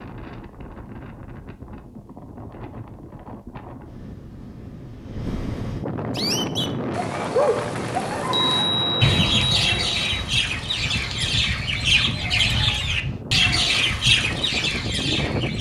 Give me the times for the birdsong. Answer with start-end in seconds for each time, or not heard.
6.2-15.5.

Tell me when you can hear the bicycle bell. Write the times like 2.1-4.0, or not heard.
8.2-10.2.